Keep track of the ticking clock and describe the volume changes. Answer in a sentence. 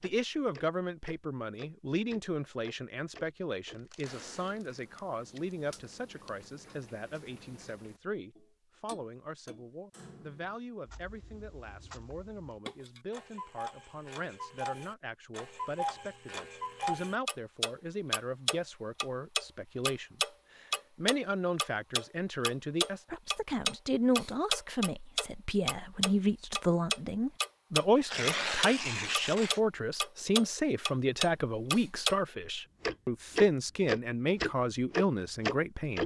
The loudness of the ticking clock goes up.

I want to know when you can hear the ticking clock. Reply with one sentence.
The ticking clock can be heard from 0.0 to 32.1 s and from 32.8 to 36.0 s.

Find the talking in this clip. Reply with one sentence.
The talking can be heard from 0.0 to 36.0 s.